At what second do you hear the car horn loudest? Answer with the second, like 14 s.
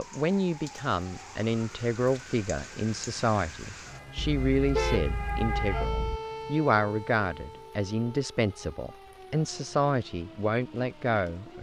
5 s.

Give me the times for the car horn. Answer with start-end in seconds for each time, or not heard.
4.2-6.2.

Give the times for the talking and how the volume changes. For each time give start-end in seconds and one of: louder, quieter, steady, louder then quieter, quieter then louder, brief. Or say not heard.
0.0-11.5 steady.